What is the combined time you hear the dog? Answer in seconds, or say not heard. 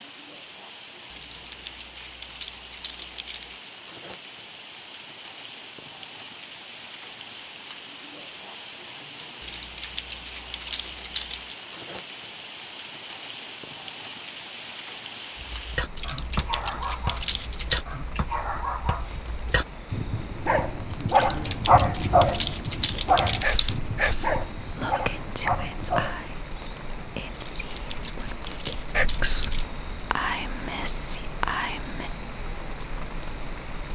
11 s.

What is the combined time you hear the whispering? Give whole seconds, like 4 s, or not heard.
9 s.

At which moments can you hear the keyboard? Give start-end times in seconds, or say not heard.
1.1-3.6, 9.4-11.6, 15.9-17.9, 21.1-23.8, 27.6-29.6.